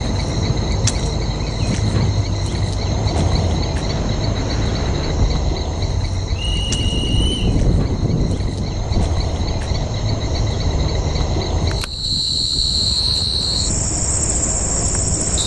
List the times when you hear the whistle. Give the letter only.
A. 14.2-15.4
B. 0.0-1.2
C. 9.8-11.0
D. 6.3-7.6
D.